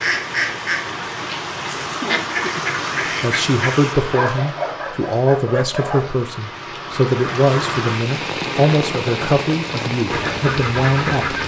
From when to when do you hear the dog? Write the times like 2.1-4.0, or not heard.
4.0-6.1.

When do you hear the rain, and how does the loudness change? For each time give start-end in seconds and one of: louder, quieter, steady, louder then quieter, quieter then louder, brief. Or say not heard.
0.0-11.4 quieter then louder.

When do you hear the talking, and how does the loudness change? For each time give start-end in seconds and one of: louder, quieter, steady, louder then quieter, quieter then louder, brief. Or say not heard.
3.2-11.4 steady.